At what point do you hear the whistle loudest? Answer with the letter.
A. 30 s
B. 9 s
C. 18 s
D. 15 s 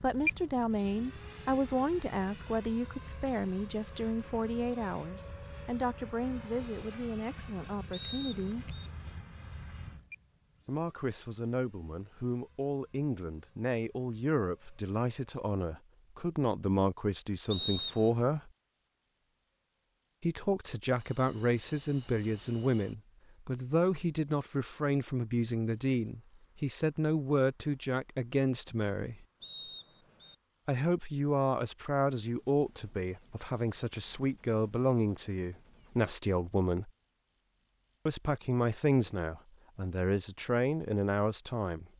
C.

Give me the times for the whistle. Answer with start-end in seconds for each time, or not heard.
7.9-8.9, 17.5-18.2, 29.4-30.4.